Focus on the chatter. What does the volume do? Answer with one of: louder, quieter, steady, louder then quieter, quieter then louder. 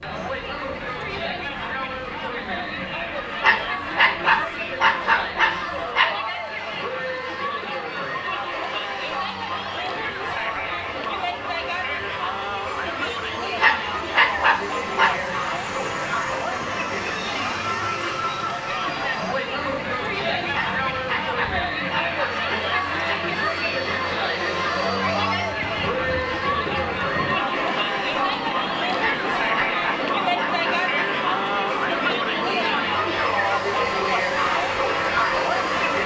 louder.